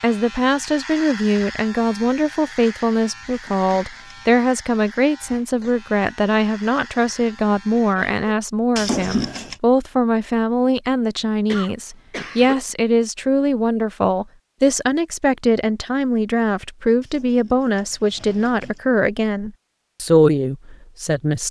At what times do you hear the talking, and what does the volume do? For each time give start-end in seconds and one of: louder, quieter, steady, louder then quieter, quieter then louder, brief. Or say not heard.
0.0-21.4 steady.